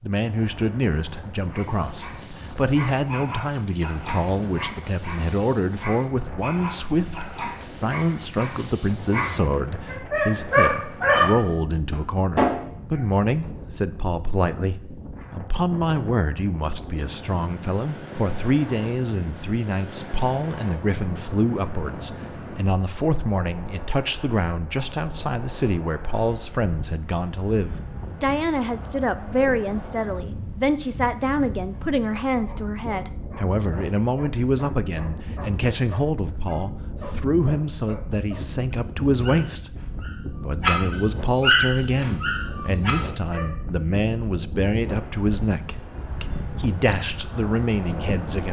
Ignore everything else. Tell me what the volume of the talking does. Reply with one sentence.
The volume of the talking stays about the same.